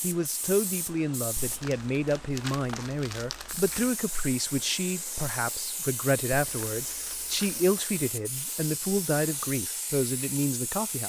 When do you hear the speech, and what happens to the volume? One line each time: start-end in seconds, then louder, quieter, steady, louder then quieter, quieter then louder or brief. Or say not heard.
0.0-11.0 steady.